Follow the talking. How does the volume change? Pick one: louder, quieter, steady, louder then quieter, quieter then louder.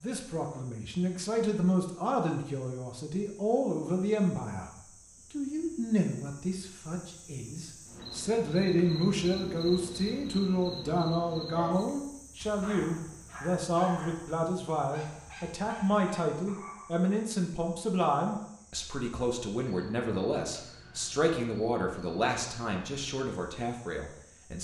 steady.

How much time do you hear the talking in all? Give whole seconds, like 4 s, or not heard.
24 s.